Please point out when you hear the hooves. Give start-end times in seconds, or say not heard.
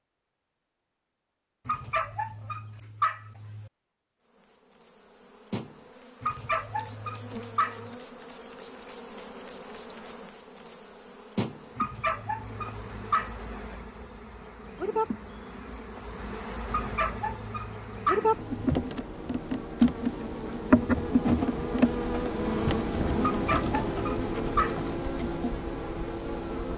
not heard.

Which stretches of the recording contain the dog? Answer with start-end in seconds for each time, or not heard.
1.6-3.7, 6.2-7.9, 11.8-13.4, 16.7-18.8, 23.2-24.9.